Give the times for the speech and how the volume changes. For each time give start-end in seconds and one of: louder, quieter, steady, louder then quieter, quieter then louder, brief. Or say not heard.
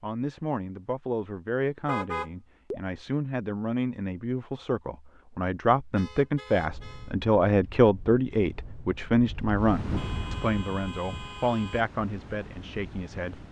0.0-13.4 louder then quieter.